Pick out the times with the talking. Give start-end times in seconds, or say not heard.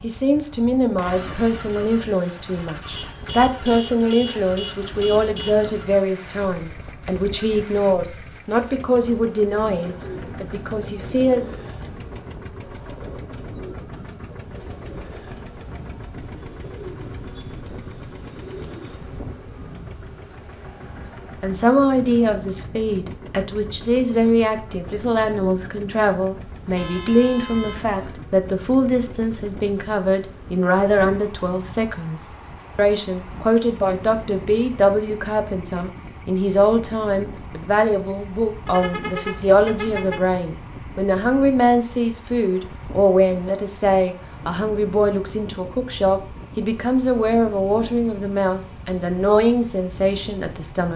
0.0-11.6, 21.4-50.9.